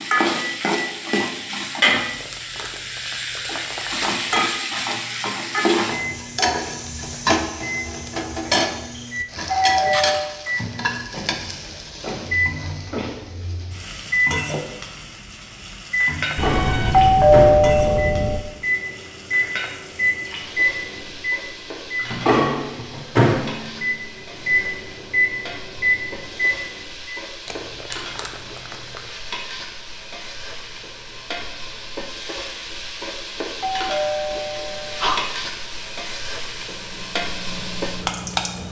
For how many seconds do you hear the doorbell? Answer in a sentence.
You can hear the doorbell for 5 seconds altogether.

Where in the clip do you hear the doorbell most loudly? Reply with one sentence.
The loudest moment of the doorbell is at 17 seconds.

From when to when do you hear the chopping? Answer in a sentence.
The chopping can't be heard in this clip.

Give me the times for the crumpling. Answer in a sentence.
The crumpling can be heard from 2.0 to 4.5 s and from 27.4 to 29.1 s.